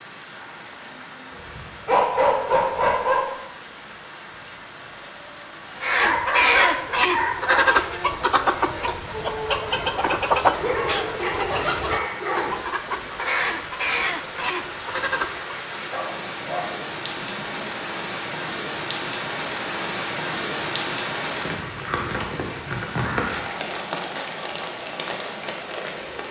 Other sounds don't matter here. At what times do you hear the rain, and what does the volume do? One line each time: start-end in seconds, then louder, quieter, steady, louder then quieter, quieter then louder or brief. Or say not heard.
0.0-26.2 louder.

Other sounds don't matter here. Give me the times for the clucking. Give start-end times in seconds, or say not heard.
5.8-15.5.